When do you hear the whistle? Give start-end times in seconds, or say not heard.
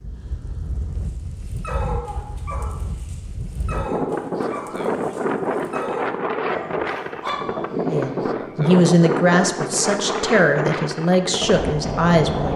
not heard.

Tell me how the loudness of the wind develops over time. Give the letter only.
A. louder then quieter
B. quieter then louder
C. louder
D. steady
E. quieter
C.